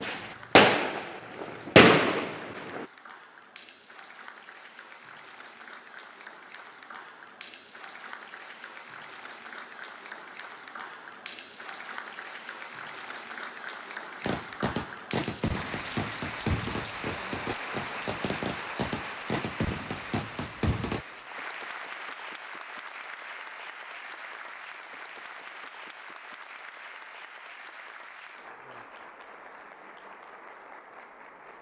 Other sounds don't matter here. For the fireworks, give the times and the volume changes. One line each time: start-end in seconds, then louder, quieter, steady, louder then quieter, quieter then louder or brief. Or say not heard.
0.0-2.9 brief
14.2-21.1 steady.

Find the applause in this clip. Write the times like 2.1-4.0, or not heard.
0.1-31.5.